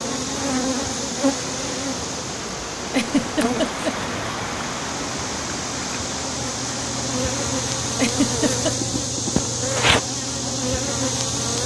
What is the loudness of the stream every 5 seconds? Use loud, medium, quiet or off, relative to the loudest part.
loud, loud, off.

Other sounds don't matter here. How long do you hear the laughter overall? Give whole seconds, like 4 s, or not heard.
2 s.